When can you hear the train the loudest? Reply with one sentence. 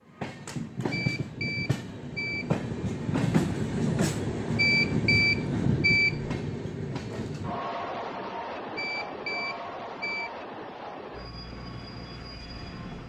The volume of the train peaks at 4 seconds.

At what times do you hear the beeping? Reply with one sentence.
You can hear the beeping from 0.9 to 2.6 s, from 4.5 to 6.3 s and from 8.8 to 10.3 s.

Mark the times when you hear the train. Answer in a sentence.
The train can be heard from 0.1 to 13.0 s.